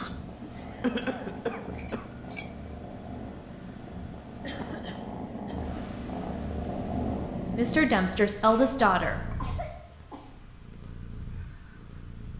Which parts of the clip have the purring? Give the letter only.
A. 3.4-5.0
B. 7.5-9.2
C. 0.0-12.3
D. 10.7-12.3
C.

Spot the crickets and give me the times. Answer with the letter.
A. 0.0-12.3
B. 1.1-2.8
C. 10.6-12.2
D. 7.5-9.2
A.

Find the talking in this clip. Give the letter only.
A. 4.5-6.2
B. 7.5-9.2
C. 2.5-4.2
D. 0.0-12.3
B.